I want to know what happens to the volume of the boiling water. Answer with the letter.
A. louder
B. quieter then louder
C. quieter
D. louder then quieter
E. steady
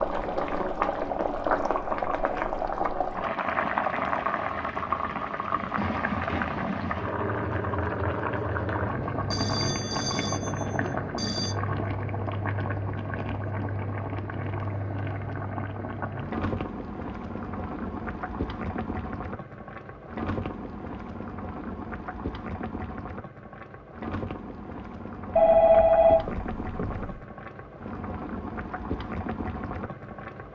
C.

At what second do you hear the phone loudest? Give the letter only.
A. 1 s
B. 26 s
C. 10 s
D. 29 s
B.